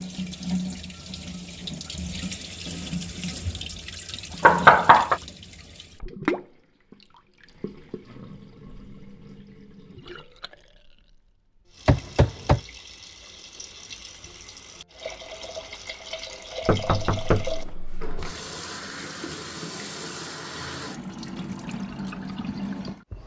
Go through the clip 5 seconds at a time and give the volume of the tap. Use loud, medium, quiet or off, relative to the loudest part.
loud, loud, quiet, loud, loud.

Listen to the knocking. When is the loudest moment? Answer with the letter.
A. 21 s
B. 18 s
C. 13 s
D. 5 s
D.